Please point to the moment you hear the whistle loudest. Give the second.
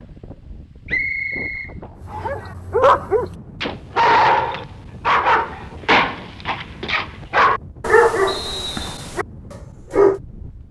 1 s.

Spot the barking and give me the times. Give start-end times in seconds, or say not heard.
2.0-10.2.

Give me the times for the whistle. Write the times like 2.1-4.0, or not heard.
0.8-2.3, 8.2-9.2.